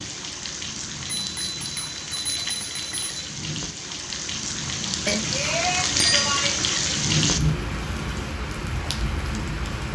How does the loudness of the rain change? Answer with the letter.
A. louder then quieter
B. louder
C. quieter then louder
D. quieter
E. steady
A.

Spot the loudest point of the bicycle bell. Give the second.
6 s.